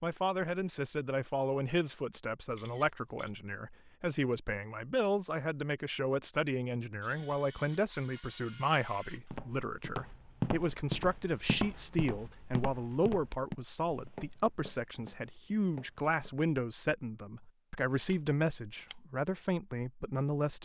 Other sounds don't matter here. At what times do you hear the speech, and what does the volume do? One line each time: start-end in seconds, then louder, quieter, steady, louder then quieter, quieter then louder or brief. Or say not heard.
0.0-20.6 steady.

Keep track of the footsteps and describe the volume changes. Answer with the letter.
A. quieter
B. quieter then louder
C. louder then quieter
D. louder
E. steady
A.